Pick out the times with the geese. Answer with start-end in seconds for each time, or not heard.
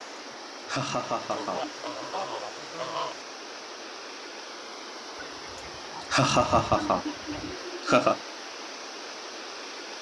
1.3-3.2, 5.2-7.7.